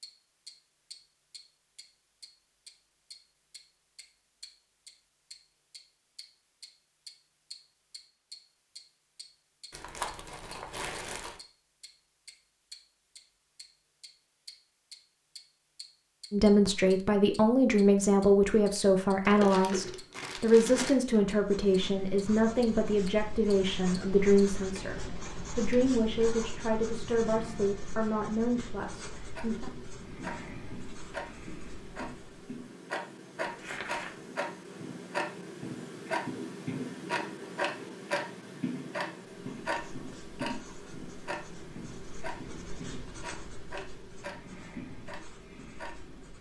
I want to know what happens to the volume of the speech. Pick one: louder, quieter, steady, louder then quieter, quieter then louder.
quieter.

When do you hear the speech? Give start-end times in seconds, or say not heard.
16.3-29.7.